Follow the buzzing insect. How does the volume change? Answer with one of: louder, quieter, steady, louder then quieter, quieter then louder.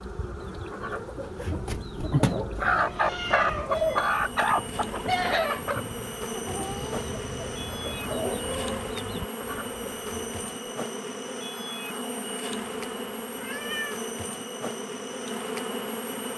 louder.